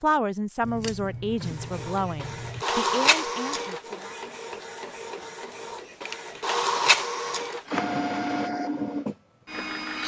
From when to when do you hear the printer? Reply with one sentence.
The printer can be heard from 1.4 to 10.0 s.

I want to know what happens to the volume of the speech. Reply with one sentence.
The loudness of the speech goes down.